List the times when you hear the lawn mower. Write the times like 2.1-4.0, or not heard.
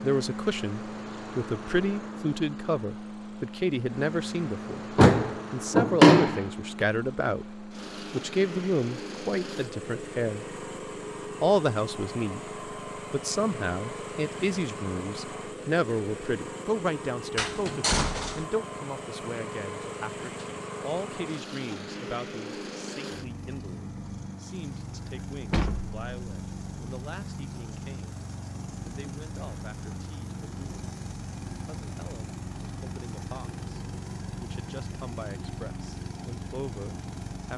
0.0-37.5.